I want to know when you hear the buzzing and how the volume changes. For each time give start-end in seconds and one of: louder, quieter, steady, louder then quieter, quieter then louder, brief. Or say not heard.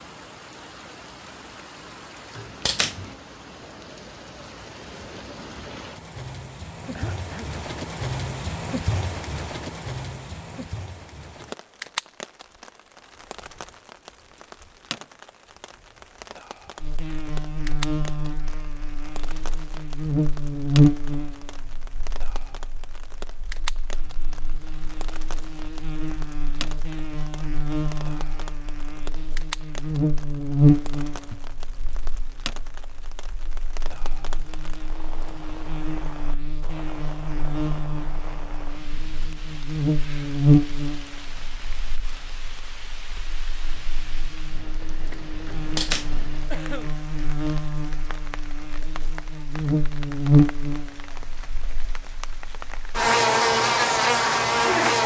16.8-55.0 quieter then louder.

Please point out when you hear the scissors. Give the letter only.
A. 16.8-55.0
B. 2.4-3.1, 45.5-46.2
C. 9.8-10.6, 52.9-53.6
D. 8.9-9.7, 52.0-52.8
B.